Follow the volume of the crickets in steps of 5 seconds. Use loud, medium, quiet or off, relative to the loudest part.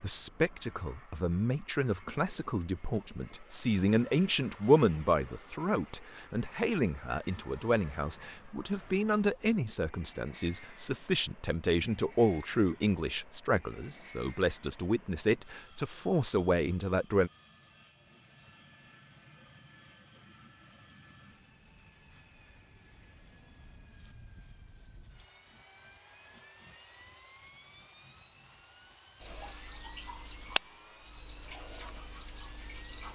off, off, quiet, medium, loud, loud, loud.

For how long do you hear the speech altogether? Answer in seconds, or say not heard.
17 s.